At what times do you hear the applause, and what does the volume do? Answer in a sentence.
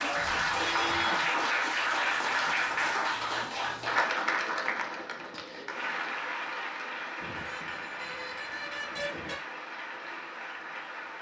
You can hear the applause from 0.0 to 11.1 s, getting quieter.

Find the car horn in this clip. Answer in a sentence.
The car horn can be heard from 0.1 to 1.3 s and from 7.2 to 9.4 s.